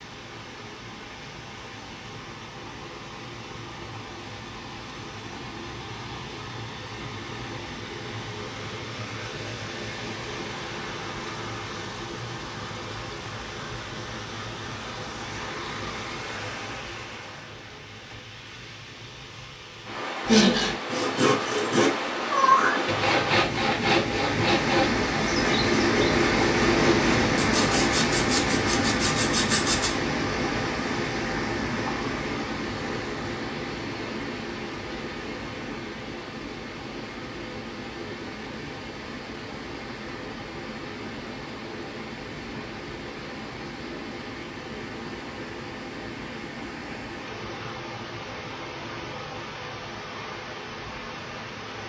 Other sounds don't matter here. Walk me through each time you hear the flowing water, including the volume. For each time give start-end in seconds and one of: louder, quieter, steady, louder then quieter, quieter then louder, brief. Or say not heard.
0.0-51.8 louder then quieter.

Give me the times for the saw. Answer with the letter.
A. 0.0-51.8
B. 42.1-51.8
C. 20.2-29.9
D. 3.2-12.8
C.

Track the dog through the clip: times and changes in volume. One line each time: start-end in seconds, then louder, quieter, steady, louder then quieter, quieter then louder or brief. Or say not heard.
not heard.